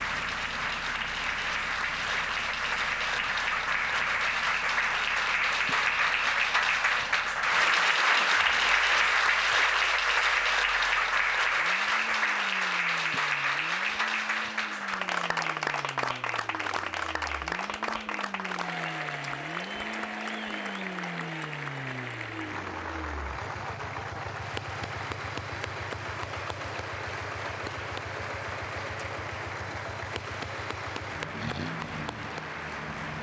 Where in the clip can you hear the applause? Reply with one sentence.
The applause can be heard from 0.0 to 33.1 s.